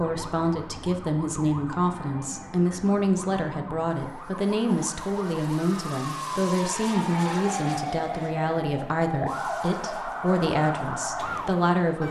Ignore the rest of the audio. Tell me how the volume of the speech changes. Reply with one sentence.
The volume of the speech stays about the same.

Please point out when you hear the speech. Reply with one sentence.
The speech can be heard from 0.0 to 12.0 s.